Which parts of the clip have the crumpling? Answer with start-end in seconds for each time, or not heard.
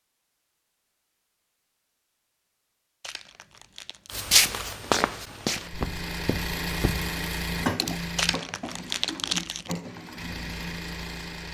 3.0-4.2, 8.2-9.7.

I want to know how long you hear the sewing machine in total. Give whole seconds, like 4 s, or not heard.
6 s.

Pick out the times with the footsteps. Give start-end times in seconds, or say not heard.
4.1-7.1.